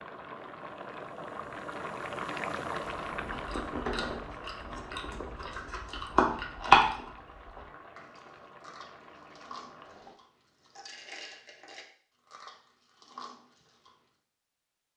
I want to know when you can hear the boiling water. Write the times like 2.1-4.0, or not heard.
0.0-10.2.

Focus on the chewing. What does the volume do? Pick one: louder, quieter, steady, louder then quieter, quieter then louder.
louder then quieter.